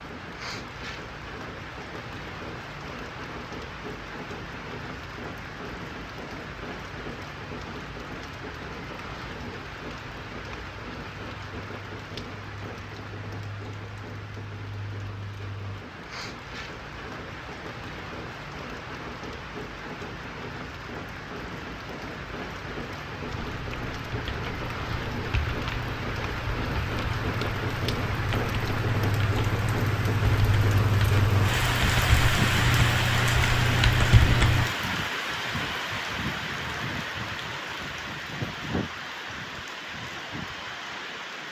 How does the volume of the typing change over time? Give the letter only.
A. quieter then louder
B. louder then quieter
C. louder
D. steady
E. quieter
C.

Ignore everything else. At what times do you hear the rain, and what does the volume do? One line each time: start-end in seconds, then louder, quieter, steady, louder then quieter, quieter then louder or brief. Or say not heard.
0.0-41.4 louder.